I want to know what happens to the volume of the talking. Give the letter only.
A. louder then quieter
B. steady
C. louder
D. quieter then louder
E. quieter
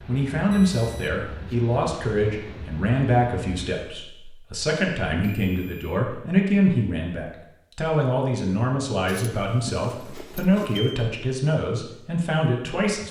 B.